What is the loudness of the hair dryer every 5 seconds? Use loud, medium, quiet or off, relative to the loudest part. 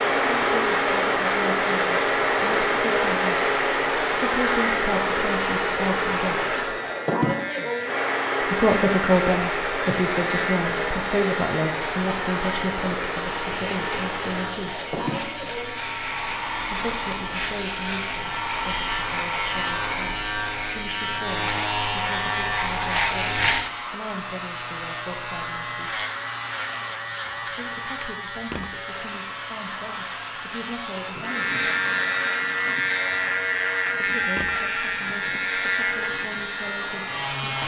loud, loud, medium, medium, quiet, quiet, quiet, quiet.